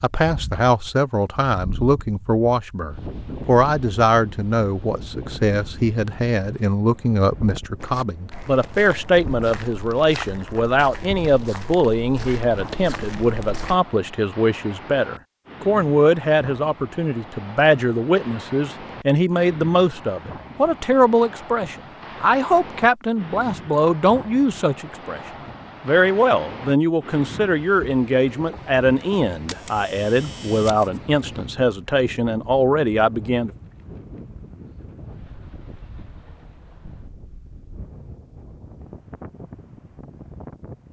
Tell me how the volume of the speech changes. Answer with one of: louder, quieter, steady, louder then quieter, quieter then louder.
steady.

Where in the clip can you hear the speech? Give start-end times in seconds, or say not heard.
0.0-25.2, 25.9-33.5.